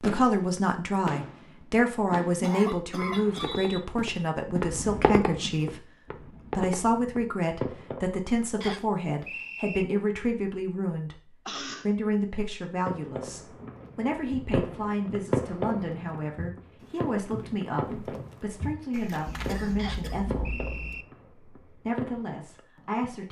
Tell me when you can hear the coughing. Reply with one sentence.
The coughing can be heard from 1.9 to 3.6 s, from 11.4 to 11.9 s and from 19.2 to 21.1 s.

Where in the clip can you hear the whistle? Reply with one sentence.
You can hear the whistle from 3.0 to 3.8 s, from 8.6 to 9.8 s and from 19.8 to 21.1 s.